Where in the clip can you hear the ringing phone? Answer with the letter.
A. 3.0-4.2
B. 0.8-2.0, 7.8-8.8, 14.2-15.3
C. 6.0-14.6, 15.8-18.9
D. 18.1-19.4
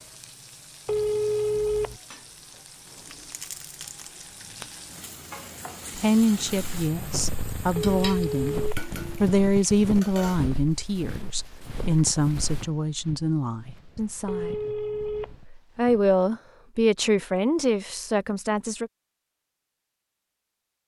B.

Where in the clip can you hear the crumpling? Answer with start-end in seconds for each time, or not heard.
3.0-4.2.